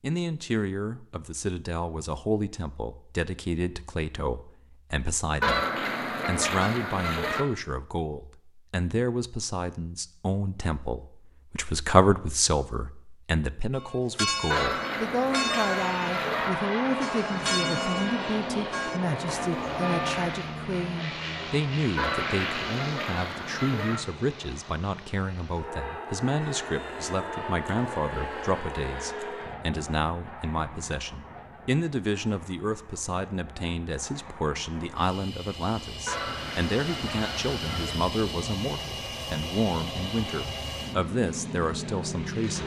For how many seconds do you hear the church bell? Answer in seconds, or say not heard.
7 s.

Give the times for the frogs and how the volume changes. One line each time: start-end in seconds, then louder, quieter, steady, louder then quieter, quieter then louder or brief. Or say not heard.
not heard.